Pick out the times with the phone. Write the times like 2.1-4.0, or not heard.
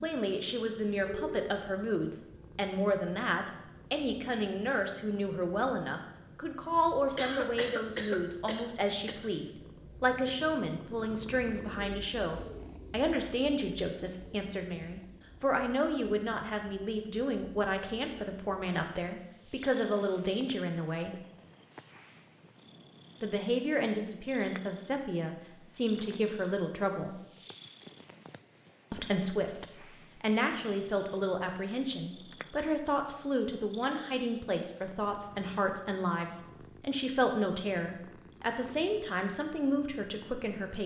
1.1-1.5.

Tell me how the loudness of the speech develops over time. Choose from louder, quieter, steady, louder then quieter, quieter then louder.
steady.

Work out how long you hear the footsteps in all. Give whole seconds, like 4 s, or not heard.
not heard.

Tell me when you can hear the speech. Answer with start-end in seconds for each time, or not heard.
0.0-21.2, 23.2-27.2, 28.9-40.8.